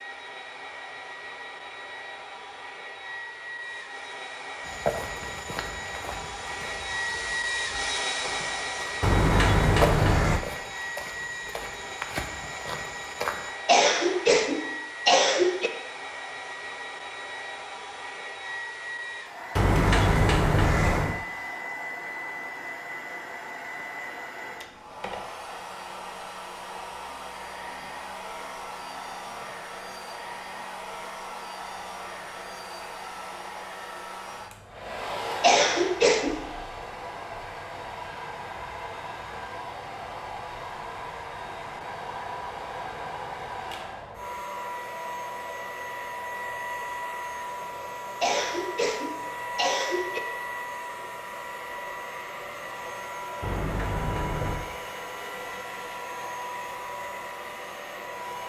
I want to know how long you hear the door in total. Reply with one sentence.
The door can be heard for 4 seconds in total.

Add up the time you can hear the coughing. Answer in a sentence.
The coughing can be heard for 5 seconds in total.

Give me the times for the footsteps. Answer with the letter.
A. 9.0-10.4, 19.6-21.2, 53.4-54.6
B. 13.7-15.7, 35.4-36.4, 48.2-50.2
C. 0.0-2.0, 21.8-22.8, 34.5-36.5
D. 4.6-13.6
D.